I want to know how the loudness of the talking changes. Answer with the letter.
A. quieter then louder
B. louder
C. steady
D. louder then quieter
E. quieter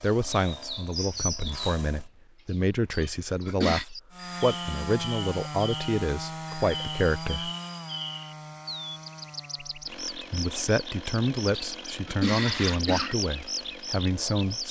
C.